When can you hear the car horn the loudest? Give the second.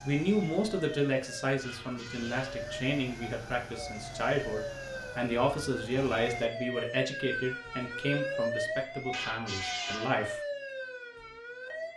10 s.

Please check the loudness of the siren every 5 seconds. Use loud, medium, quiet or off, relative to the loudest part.
medium, loud, loud.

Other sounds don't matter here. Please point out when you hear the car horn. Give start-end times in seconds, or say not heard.
1.6-2.7, 9.1-10.3.